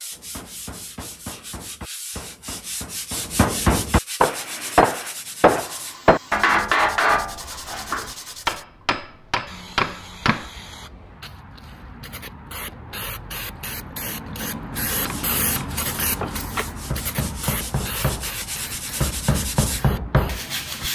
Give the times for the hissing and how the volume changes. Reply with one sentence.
The hissing can be heard from 4.2 to 20.9 s, getting louder then quieter.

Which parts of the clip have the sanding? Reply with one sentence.
You can hear the sanding from 0.0 to 8.7 s and from 14.9 to 20.9 s.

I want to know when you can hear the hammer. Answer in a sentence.
The hammer can be heard from 0.1 to 10.4 s and from 15.1 to 20.9 s.